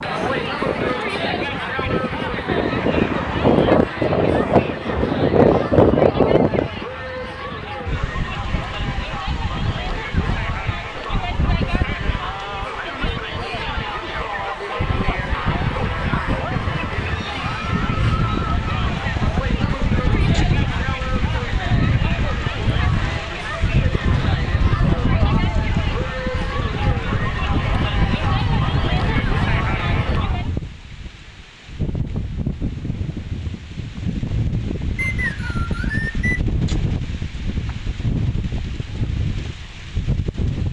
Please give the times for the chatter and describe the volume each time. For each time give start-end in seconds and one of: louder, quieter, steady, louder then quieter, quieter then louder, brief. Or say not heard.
0.0-30.6 steady.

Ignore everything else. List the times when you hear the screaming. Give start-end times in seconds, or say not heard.
not heard.